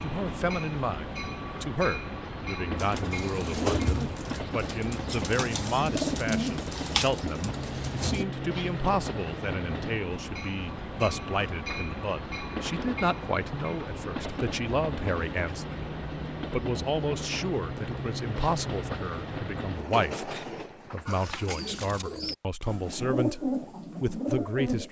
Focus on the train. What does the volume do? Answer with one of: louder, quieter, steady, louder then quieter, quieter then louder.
steady.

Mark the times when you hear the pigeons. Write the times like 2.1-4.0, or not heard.
2.8-8.2, 21.1-24.8.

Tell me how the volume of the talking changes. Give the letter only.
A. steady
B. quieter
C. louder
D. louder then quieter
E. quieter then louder
A.